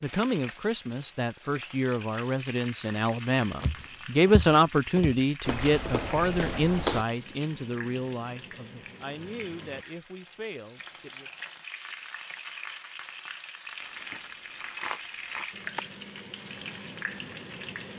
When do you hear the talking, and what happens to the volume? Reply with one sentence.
You can hear the talking from 0.0 to 11.3 s, getting louder then quieter.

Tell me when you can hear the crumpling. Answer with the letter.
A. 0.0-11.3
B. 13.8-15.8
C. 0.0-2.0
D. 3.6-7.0
B.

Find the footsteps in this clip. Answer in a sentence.
The footsteps can be heard from 3.6 to 7.0 s.